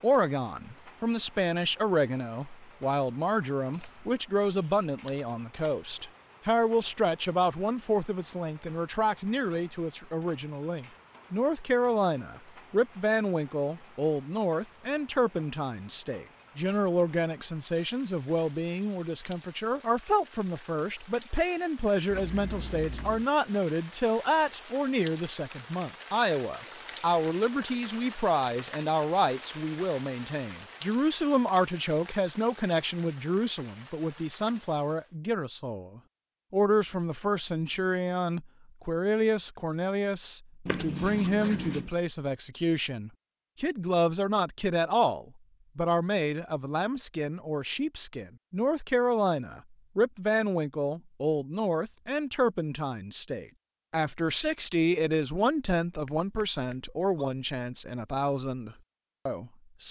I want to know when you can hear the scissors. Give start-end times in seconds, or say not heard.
3.7-5.9, 22.1-23.2, 40.6-41.9.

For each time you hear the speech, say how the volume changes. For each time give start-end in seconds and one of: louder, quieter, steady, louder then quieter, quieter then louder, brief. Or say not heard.
0.0-59.8 steady.